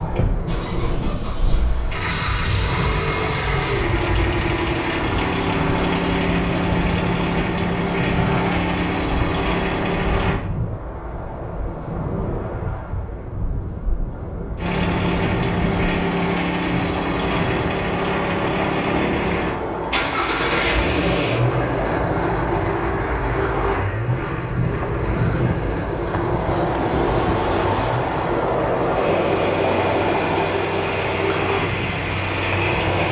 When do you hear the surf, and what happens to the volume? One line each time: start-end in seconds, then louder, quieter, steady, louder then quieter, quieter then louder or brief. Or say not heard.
0.0-33.0 louder.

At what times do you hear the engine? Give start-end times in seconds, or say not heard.
0.0-10.4, 14.6-33.0.